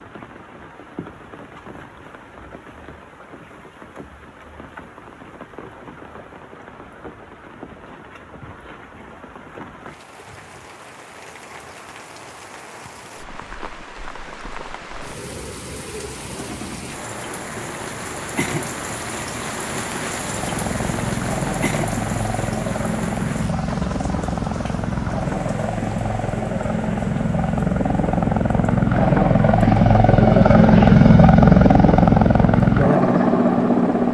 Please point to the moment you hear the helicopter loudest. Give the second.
31 s.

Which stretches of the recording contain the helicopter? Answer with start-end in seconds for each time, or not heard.
20.1-34.0.